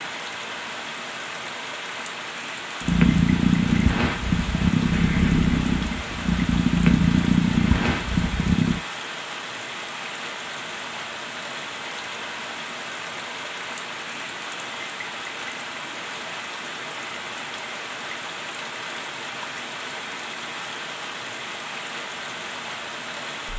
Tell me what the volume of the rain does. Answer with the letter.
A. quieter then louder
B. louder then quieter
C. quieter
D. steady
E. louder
D.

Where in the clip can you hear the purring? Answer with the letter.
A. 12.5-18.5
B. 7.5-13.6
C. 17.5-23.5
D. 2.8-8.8
D.